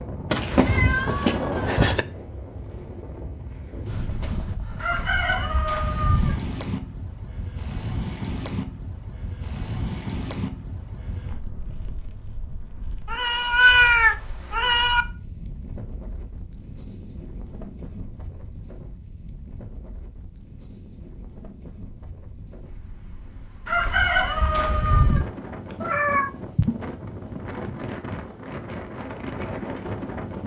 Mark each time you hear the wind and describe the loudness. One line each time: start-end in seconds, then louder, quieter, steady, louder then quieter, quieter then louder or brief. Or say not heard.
0.0-30.4 quieter then louder.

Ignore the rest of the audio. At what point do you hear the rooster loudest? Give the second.
24 s.